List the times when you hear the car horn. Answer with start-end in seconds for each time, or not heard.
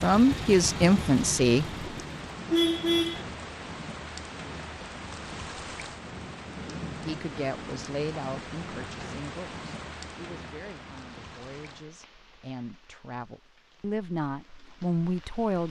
1.9-3.2.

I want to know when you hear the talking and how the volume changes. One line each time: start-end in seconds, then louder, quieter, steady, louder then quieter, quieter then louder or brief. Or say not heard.
0.0-1.9 brief
7.0-15.6 quieter then louder.